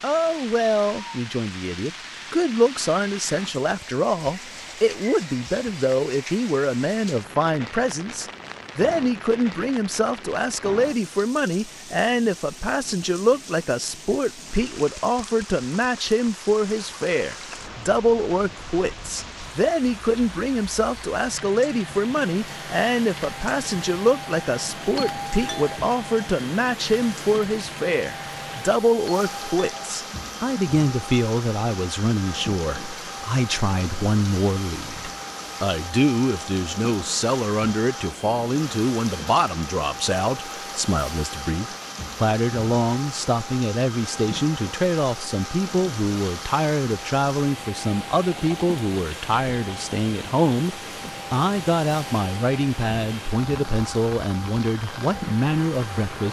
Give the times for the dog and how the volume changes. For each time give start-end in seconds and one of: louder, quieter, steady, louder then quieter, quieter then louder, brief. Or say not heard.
not heard.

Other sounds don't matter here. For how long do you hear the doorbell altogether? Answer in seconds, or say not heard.
2 s.